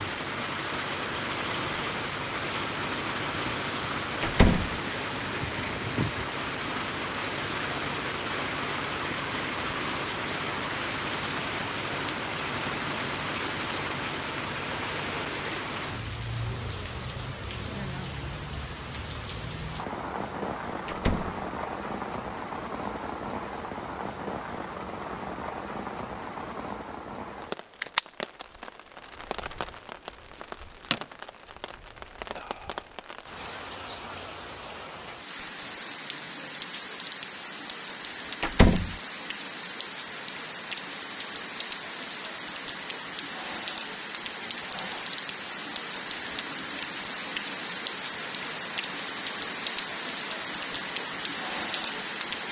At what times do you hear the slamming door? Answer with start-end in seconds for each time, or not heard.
4.2-4.8, 20.9-21.4, 38.4-39.0.